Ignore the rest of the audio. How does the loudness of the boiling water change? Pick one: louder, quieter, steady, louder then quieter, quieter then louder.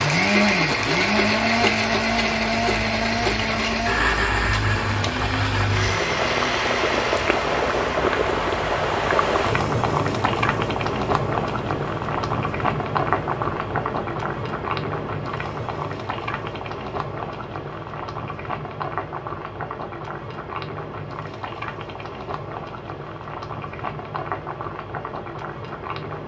louder then quieter.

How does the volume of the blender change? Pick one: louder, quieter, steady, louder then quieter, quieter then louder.
quieter.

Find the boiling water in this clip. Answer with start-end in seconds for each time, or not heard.
0.2-26.2.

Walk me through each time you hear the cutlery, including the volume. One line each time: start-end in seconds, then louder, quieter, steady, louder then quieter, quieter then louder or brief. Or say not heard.
not heard.